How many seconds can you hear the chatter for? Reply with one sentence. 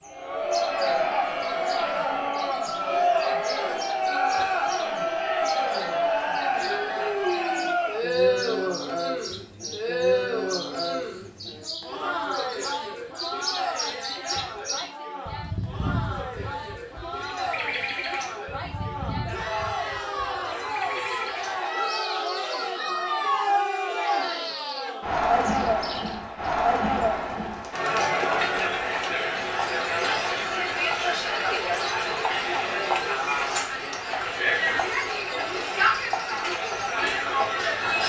The chatter can be heard for 38 seconds in total.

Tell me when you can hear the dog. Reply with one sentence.
You can't hear the dog here.